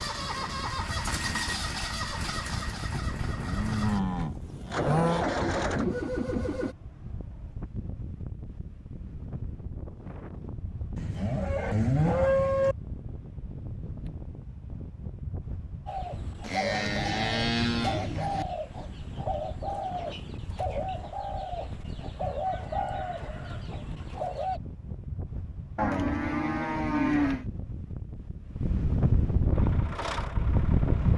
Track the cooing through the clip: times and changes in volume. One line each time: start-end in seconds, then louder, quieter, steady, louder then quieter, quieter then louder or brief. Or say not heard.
15.8-24.6 steady.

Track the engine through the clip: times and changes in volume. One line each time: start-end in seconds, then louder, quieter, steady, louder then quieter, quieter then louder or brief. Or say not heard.
0.0-6.8 quieter then louder
29.5-31.1 brief.